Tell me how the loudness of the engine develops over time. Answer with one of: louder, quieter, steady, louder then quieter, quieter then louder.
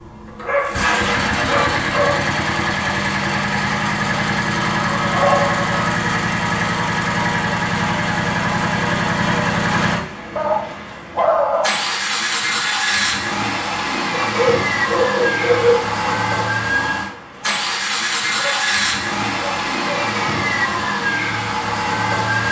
steady.